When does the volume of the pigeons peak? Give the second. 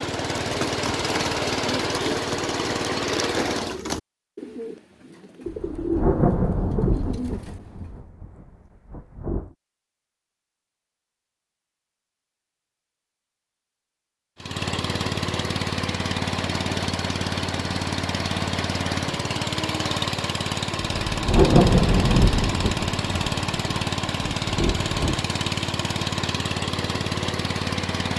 6 s.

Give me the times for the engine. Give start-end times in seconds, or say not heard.
0.0-3.8, 14.3-28.1.